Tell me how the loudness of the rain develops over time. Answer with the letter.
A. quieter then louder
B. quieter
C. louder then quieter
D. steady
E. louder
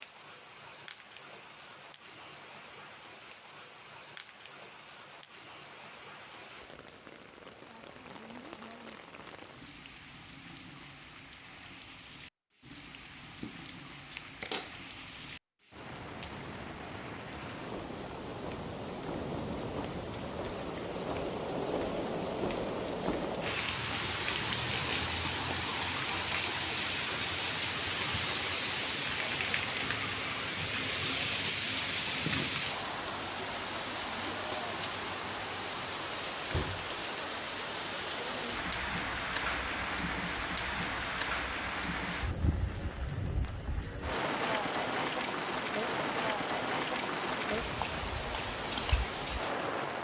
E.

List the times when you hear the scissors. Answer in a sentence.
You can hear the scissors from 13.4 to 14.7 s.